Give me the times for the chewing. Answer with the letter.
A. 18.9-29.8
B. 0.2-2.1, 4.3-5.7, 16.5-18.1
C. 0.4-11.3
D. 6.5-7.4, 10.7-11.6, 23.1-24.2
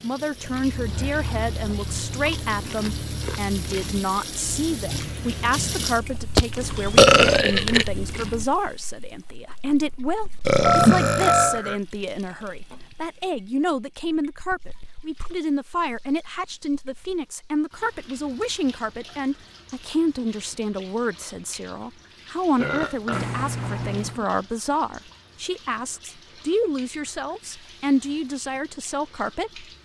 C.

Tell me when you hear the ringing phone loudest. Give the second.
11 s.